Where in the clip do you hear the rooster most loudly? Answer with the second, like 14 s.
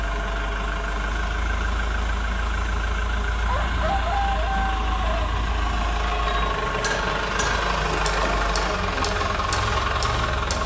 4 s.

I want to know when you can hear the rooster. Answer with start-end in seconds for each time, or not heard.
3.5-5.3.